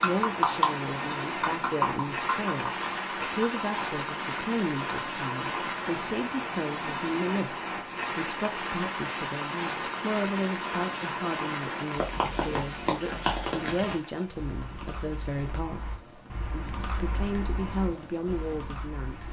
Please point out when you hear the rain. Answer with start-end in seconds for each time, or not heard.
0.0-19.2.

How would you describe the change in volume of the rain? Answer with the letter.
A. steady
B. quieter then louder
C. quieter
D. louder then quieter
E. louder
C.